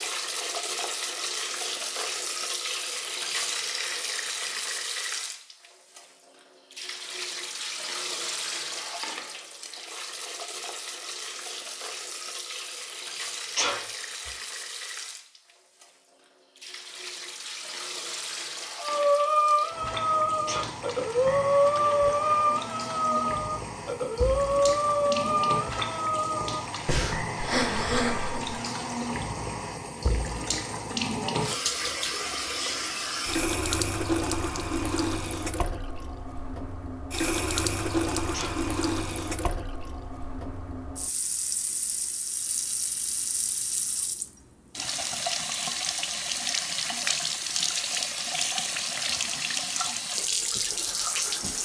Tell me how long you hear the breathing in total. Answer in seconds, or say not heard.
10 s.